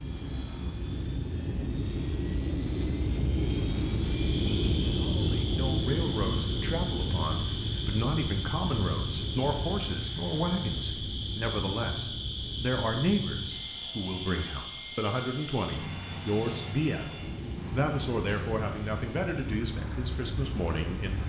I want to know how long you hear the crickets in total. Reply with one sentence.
You can hear the crickets for 17 seconds altogether.